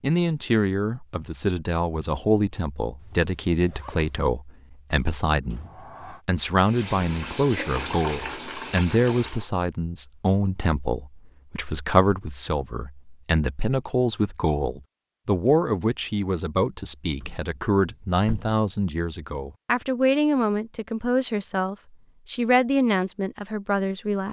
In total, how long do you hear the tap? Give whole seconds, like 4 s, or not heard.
3 s.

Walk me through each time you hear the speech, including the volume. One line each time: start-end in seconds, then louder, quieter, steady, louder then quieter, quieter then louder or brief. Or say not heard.
0.0-24.2 steady.